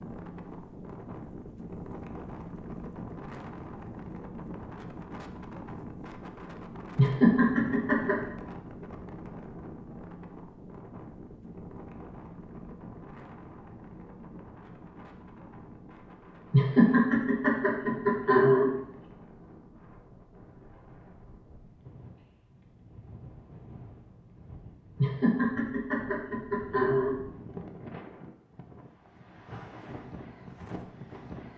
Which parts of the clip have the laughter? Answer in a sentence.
You can hear the laughter from 7.0 to 8.3 s, from 16.5 to 18.8 s and from 25.0 to 27.2 s.